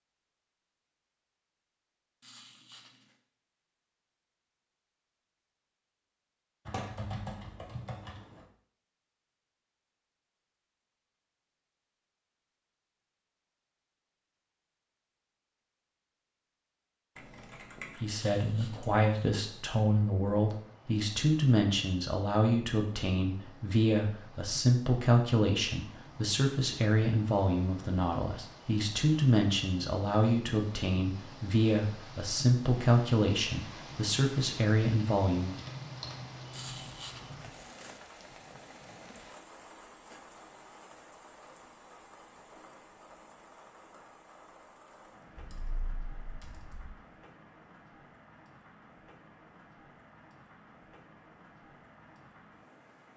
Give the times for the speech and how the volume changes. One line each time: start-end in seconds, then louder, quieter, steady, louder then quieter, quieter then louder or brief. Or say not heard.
18.0-35.5 steady.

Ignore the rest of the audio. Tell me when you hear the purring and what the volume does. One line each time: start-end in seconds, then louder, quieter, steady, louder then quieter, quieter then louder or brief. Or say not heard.
not heard.